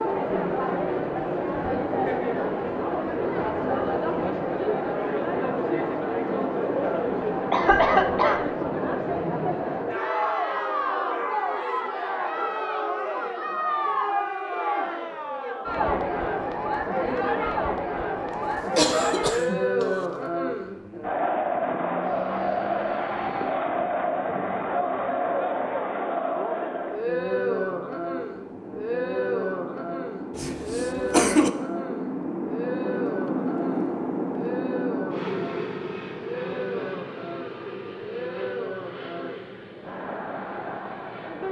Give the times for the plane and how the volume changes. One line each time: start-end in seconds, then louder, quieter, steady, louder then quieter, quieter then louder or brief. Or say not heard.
22.0-41.4 louder then quieter.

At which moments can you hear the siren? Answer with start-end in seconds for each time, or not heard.
not heard.